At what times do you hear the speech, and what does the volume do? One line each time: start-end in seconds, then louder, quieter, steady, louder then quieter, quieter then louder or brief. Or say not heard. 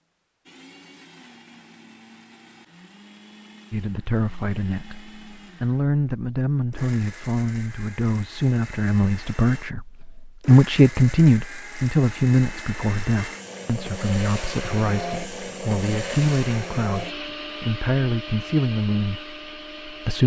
3.7-20.2 louder then quieter.